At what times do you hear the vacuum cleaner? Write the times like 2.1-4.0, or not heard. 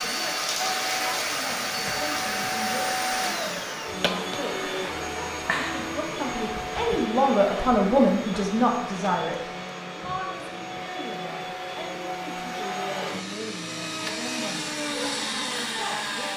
0.0-16.3.